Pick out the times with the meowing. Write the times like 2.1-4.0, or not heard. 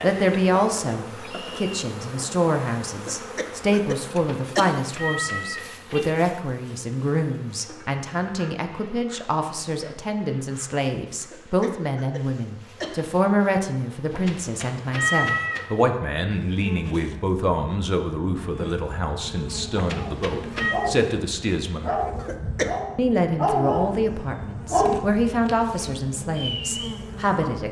4.1-6.0, 14.1-15.7, 19.8-20.8.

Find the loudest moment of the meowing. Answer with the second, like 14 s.
15 s.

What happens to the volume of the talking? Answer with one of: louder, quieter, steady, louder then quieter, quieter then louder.
steady.